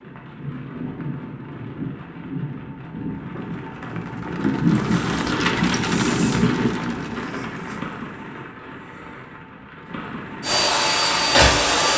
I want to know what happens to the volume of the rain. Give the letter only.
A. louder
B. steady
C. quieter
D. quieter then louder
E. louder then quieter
E.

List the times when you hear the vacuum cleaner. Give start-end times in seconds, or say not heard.
10.4-11.9.